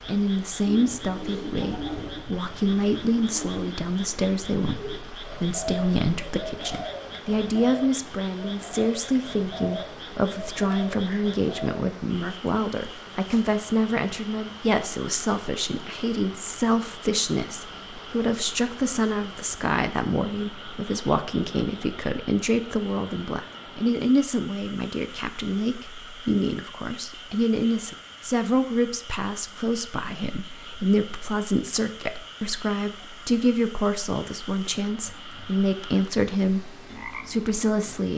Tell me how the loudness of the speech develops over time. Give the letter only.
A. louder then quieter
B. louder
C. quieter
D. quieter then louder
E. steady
E.